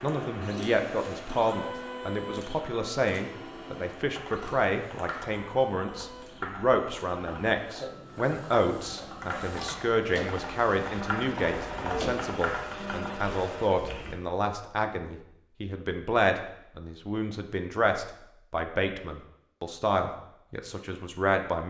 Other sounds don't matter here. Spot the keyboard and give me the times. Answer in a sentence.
You can hear the keyboard from 4.0 to 14.2 s.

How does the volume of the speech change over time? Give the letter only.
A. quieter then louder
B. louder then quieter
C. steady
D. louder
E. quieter
C.